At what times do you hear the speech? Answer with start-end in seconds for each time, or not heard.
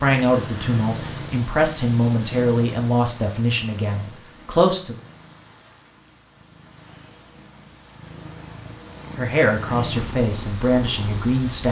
0.0-5.0, 9.2-11.6.